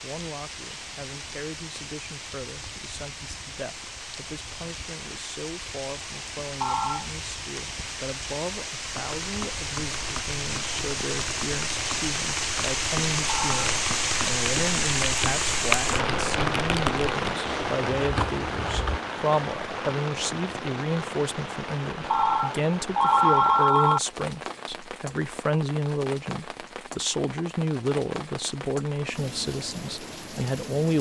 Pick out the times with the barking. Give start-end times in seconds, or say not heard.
not heard.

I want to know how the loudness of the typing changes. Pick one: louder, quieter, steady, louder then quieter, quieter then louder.
louder.